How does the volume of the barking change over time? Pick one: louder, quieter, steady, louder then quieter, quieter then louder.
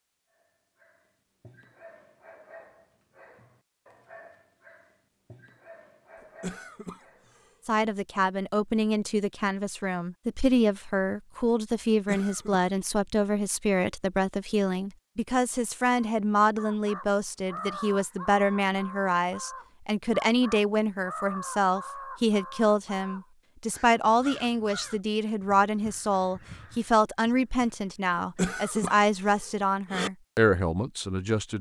steady.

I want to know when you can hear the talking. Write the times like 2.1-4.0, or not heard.
7.7-31.5.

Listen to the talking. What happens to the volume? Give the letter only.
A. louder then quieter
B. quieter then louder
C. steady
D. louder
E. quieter
C.